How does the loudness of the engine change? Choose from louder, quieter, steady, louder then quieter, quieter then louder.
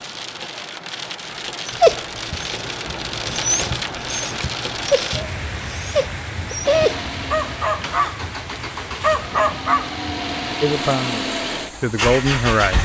louder.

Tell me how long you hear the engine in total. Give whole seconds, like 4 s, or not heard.
6 s.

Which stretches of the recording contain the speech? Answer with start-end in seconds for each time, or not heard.
10.6-12.8.